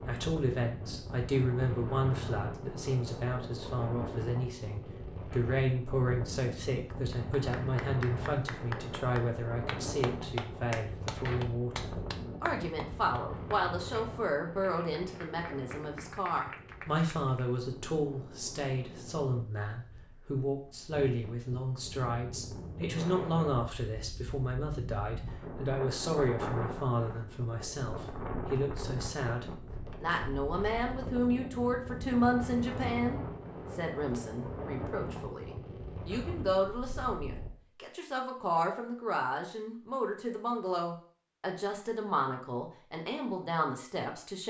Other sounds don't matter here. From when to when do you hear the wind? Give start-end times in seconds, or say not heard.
0.0-37.5.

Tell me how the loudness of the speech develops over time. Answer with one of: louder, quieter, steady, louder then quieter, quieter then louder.
steady.